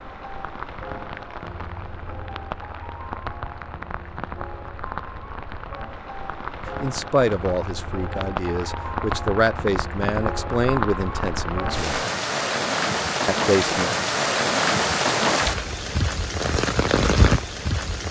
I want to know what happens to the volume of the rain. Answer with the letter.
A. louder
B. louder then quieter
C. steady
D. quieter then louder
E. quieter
A.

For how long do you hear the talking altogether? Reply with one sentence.
The talking can be heard for 6 seconds in total.